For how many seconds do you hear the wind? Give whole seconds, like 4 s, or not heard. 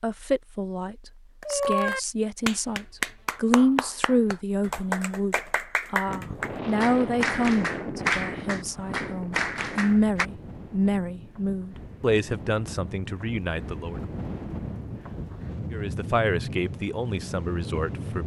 12 s.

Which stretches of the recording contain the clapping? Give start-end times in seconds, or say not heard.
1.4-10.3.